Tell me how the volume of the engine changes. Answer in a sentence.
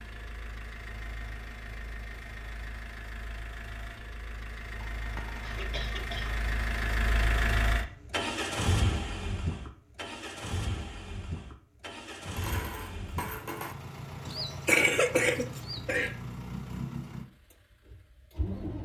The loudness of the engine goes up, then down.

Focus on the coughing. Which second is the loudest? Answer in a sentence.
The loudest moment of the coughing is at 15 seconds.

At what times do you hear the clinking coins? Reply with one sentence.
The clinking coins can be heard from 5.0 to 5.6 s and from 12.2 to 13.8 s.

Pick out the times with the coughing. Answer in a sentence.
You can hear the coughing from 5.5 to 6.4 s and from 14.2 to 16.1 s.